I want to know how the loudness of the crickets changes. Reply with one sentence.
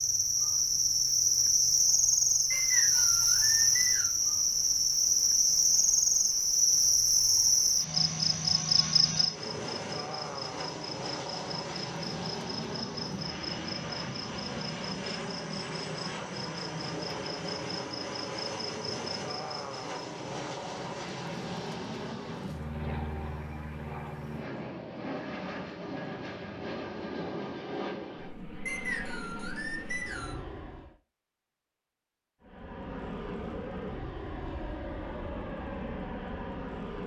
The volume of the crickets goes down.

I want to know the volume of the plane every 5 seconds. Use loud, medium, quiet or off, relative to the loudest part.
quiet, medium, loud, loud, loud, loud, loud, loud.